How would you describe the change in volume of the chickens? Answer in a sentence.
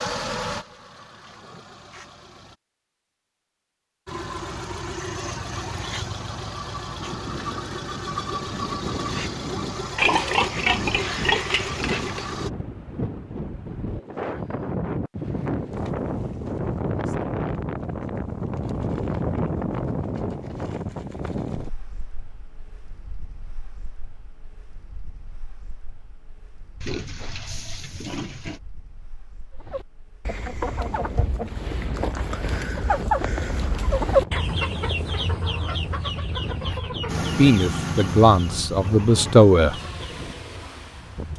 The volume of the chickens goes up, then down.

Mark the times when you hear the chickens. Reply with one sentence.
You can hear the chickens from 29.6 to 40.2 s.